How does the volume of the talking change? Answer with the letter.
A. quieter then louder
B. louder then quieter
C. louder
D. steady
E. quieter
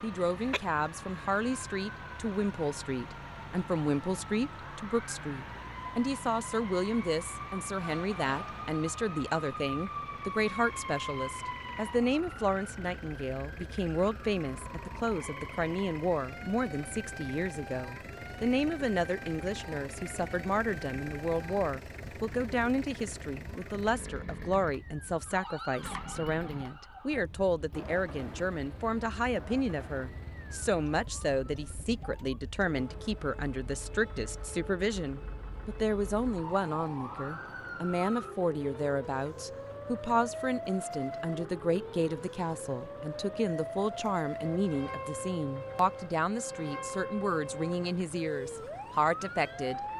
D.